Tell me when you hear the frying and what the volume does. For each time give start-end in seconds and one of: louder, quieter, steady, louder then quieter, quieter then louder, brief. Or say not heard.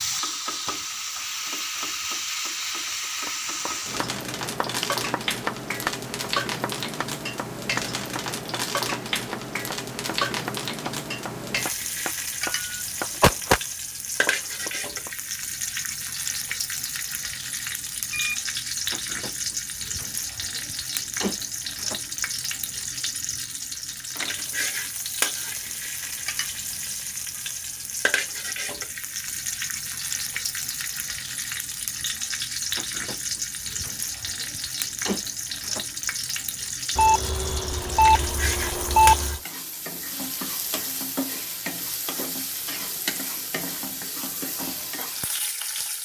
0.0-45.9 steady.